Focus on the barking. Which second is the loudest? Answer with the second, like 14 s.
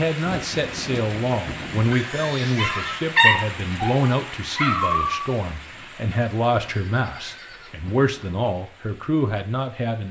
3 s.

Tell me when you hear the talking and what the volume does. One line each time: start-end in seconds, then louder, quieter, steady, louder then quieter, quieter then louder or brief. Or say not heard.
0.0-10.0 steady.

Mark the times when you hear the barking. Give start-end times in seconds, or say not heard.
2.5-5.2.